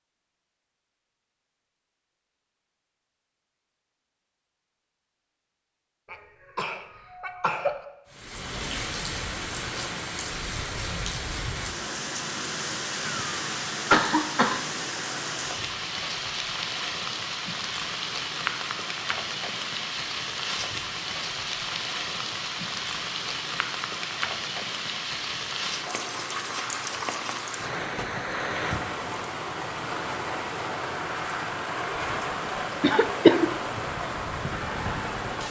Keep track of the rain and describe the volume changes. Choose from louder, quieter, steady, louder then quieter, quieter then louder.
steady.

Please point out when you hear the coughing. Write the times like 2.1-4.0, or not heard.
6.1-7.8, 13.1-14.7, 32.8-33.5.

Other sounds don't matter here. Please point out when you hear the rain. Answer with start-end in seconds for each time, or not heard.
8.1-35.4.